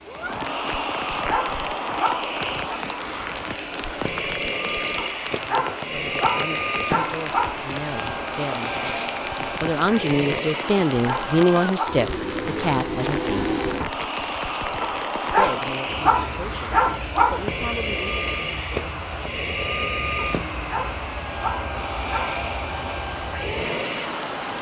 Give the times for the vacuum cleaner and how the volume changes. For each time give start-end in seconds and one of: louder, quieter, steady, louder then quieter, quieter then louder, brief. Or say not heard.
0.0-24.5 steady.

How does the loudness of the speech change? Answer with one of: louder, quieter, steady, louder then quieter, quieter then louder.
louder then quieter.